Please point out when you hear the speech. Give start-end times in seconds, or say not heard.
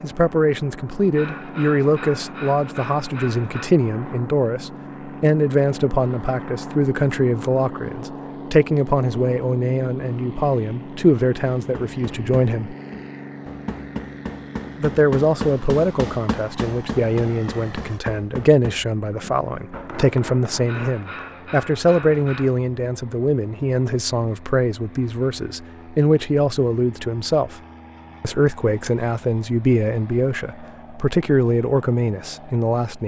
0.0-12.8, 14.8-27.6, 28.2-33.0.